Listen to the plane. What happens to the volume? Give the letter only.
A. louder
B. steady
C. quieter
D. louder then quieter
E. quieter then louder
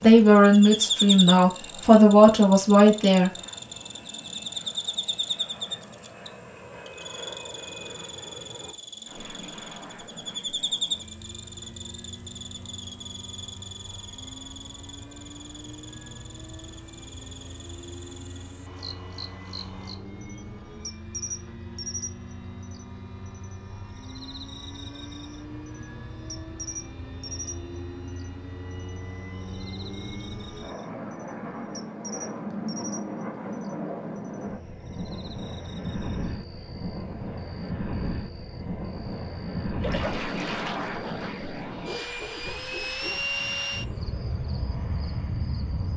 A.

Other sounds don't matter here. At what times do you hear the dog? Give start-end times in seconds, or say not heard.
41.9-43.7.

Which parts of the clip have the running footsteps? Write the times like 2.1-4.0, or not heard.
not heard.